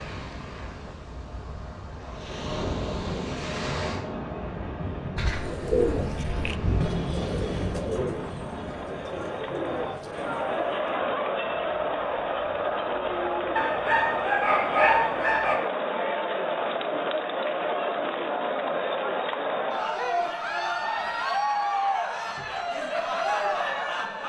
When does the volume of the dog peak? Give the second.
15 s.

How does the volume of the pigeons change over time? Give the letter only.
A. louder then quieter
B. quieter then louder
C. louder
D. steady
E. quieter
E.